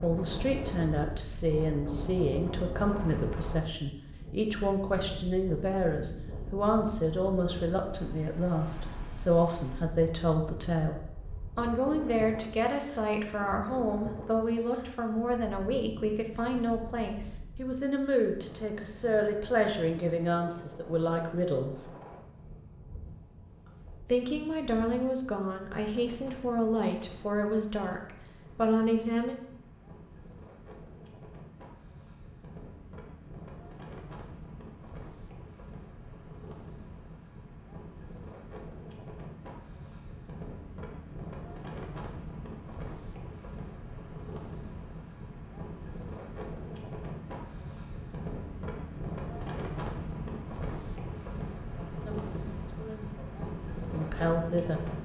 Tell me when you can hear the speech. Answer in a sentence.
The speech can be heard from 0.0 to 21.9 s, from 24.1 to 29.4 s and from 51.7 to 54.8 s.